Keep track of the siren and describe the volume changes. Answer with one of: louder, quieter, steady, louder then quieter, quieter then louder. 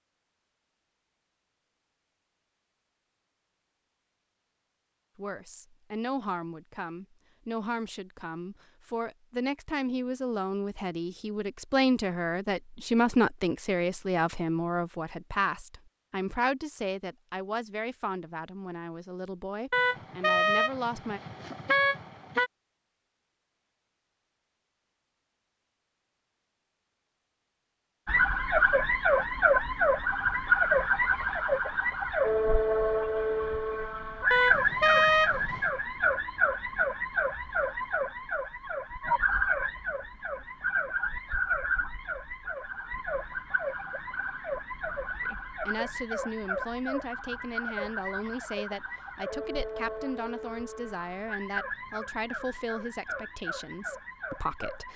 quieter.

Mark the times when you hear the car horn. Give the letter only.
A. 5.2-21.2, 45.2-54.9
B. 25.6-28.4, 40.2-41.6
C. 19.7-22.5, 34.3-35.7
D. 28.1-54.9
C.